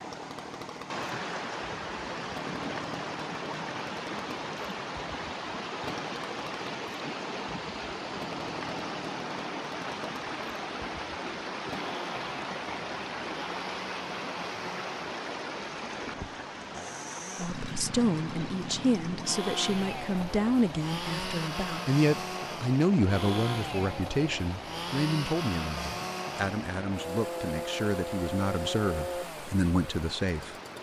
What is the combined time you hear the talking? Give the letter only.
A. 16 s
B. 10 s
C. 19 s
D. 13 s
D.